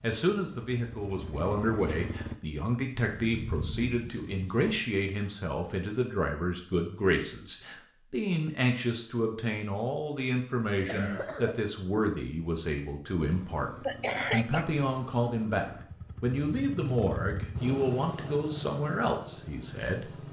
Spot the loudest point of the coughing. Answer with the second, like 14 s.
14 s.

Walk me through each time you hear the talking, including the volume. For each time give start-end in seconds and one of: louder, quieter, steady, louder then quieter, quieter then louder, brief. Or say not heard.
0.0-20.1 steady.